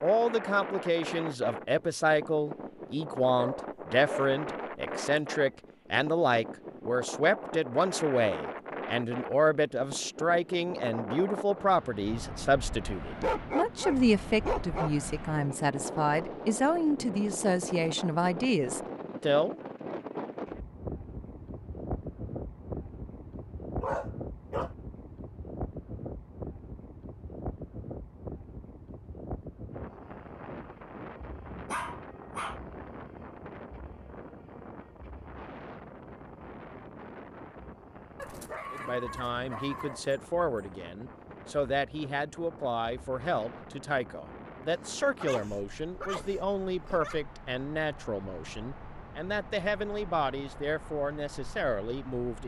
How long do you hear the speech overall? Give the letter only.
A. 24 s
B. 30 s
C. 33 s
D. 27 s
C.